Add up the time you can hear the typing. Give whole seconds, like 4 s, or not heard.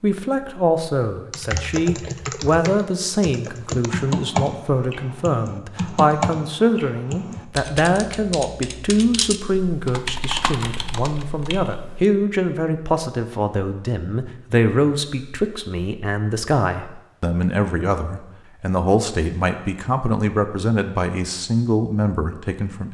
11 s.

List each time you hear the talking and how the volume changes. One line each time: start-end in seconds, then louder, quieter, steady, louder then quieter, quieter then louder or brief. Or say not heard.
0.0-22.8 steady.